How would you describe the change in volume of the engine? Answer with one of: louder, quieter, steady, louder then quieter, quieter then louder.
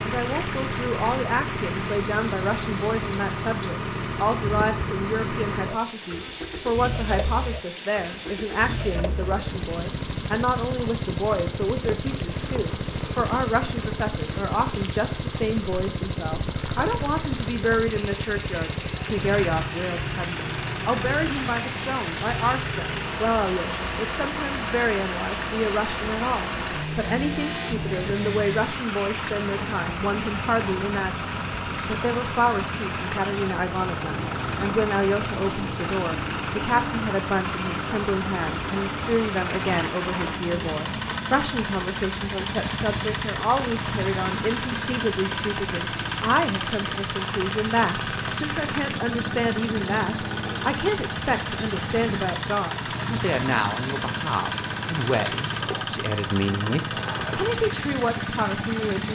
steady.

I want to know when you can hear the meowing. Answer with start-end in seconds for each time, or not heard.
not heard.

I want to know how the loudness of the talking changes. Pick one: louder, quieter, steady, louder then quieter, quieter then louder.
steady.